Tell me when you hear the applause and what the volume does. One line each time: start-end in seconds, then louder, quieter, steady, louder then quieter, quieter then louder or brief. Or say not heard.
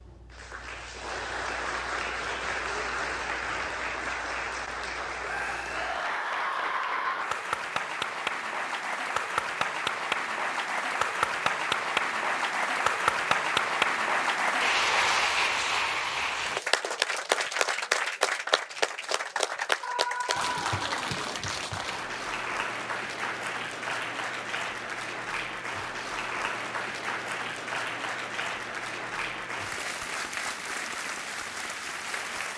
0.0-32.5 louder then quieter.